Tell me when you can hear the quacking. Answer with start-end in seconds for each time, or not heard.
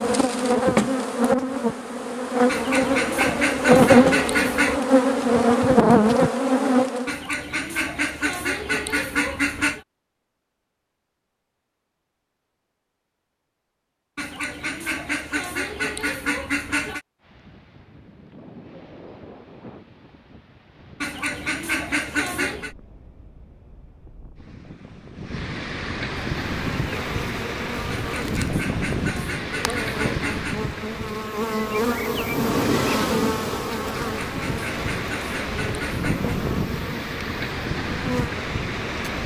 2.5-4.8, 7.0-9.8, 14.2-17.0, 21.0-22.8, 27.9-30.6, 34.0-36.4.